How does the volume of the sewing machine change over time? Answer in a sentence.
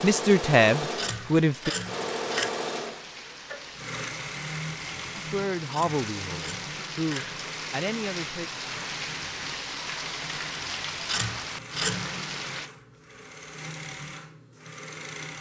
The volume of the sewing machine goes down.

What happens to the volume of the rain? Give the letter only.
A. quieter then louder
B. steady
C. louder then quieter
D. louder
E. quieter
D.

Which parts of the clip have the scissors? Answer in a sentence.
The scissors can be heard from 0.9 to 2.5 s, from 5.7 to 7.5 s and from 11.0 to 12.2 s.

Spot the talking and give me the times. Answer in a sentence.
The talking can be heard from 0.0 to 1.7 s and from 5.2 to 8.5 s.